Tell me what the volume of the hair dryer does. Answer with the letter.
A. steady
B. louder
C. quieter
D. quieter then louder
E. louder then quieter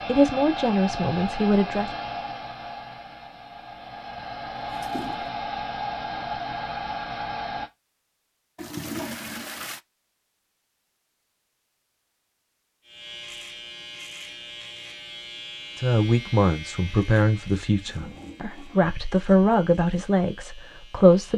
D.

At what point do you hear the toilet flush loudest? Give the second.
9 s.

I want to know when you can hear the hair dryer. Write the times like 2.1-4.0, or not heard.
0.0-7.7.